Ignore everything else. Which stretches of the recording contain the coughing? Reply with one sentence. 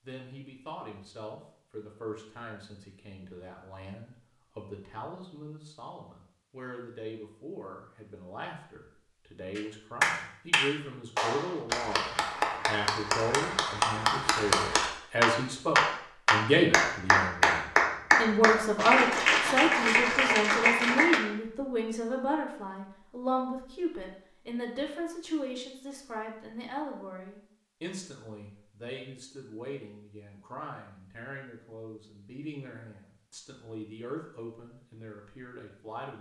The coughing can't be heard in this clip.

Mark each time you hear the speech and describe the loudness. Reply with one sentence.
The speech can be heard from 0.0 to 36.1 s, getting louder then quieter.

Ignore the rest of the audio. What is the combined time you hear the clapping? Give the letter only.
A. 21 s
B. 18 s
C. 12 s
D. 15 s
C.